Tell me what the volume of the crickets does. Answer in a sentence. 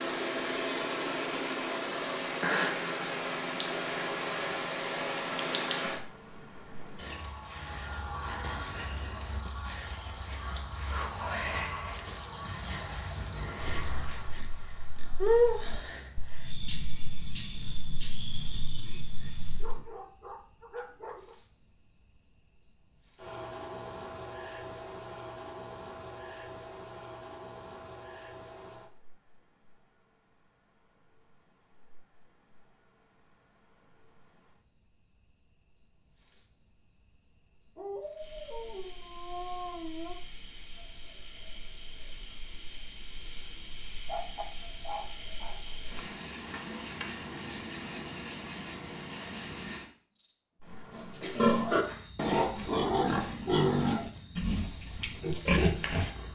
The loudness of the crickets goes down, then up.